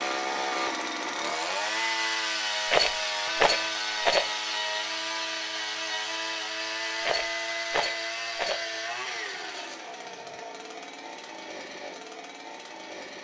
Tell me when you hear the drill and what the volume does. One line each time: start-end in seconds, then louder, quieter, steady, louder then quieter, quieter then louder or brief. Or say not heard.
0.0-13.1 quieter.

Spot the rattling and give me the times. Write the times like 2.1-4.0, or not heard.
2.6-4.3, 7.0-8.7.